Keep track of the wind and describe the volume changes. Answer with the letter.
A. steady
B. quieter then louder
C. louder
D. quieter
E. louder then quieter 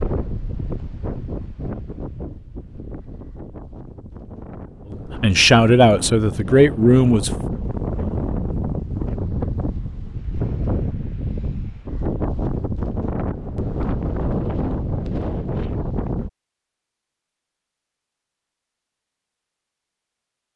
C.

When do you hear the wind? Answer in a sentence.
You can hear the wind from 0.0 to 16.3 s.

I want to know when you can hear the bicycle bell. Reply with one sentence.
You can't hear the bicycle bell here.